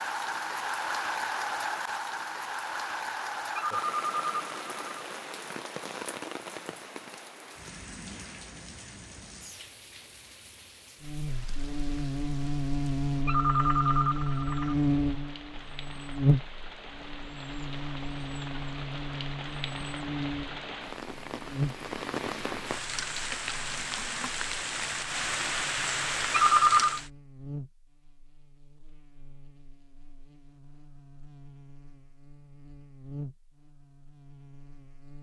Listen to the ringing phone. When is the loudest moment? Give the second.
27 s.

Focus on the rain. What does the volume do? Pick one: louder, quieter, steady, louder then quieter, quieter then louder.
quieter then louder.